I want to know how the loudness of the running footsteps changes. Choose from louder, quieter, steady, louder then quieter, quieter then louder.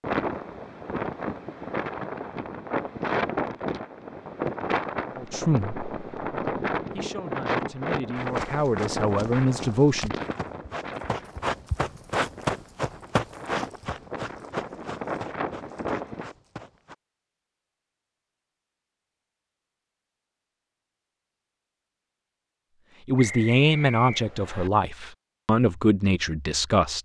louder then quieter.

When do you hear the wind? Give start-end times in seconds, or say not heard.
0.0-16.2.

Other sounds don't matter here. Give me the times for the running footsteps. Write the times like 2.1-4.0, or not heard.
8.2-16.9.